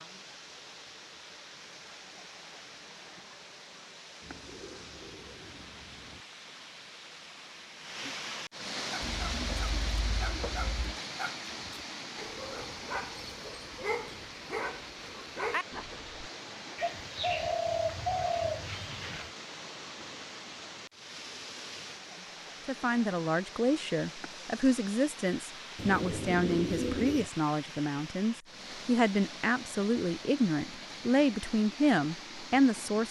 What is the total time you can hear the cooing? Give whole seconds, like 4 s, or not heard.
8 s.